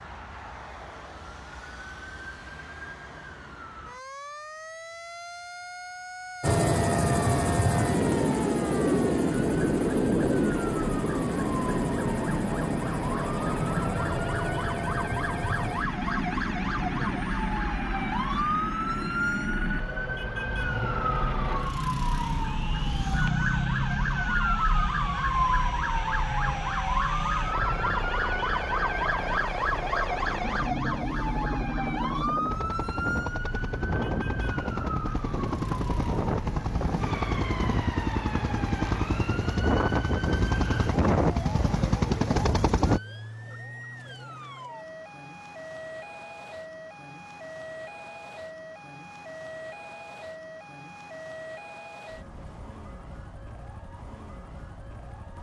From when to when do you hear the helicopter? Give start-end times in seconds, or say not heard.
6.4-43.0.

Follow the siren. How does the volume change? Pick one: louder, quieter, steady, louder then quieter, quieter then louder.
louder then quieter.